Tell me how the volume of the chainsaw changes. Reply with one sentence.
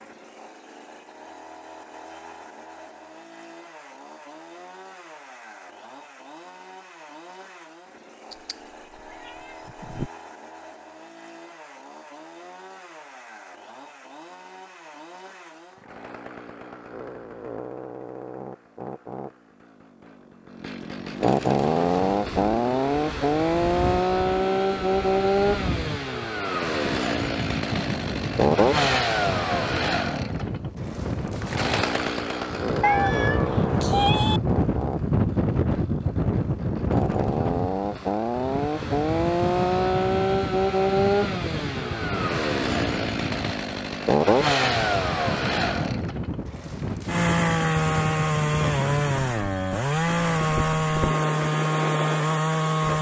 The volume of the chainsaw goes up.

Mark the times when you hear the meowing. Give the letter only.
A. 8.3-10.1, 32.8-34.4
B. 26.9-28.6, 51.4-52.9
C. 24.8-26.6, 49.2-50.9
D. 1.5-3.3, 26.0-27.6
A.